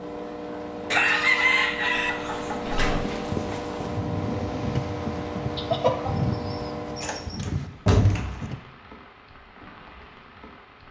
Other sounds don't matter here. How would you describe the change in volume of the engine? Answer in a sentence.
The loudness of the engine stays about the same.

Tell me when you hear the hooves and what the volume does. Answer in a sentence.
You can hear the hooves from 2.8 to 8.6 s, at a steady volume.